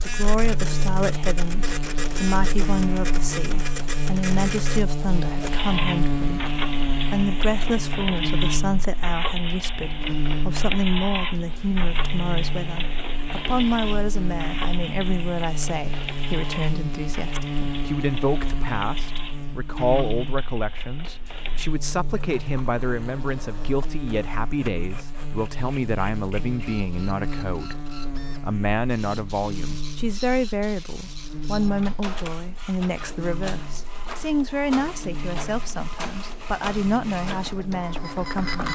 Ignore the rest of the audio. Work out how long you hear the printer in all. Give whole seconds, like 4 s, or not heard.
39 s.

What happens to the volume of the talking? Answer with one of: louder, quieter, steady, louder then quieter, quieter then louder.
steady.